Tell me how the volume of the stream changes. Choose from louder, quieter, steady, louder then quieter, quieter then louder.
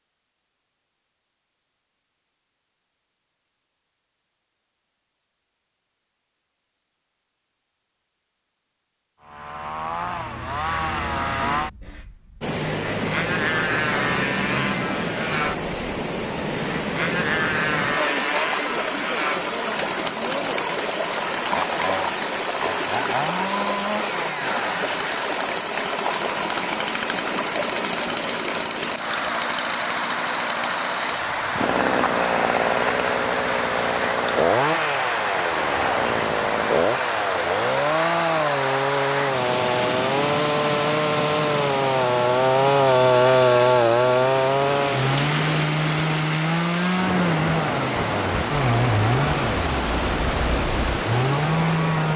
steady.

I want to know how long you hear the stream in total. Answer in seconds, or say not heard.
40 s.